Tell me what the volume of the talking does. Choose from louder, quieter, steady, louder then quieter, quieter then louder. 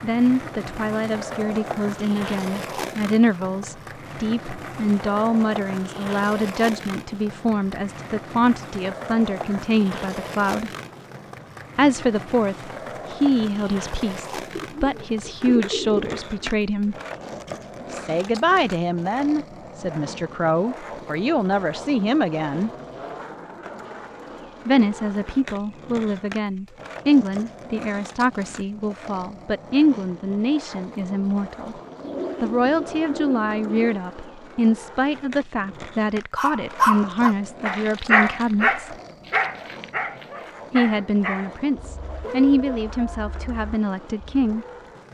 steady.